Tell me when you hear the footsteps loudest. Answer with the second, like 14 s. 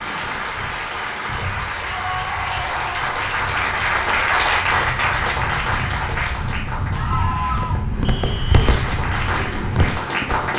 9 s.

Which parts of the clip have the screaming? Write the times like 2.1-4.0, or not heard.
1.9-3.1, 6.9-7.8.